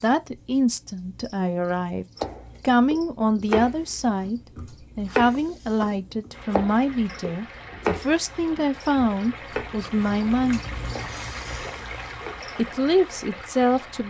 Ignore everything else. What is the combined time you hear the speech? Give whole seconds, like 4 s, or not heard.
12 s.